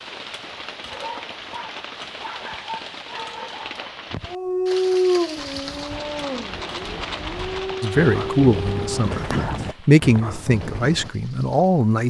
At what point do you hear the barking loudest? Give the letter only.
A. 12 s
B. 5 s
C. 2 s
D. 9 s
B.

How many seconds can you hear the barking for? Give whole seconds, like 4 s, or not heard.
8 s.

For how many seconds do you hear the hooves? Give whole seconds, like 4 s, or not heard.
6 s.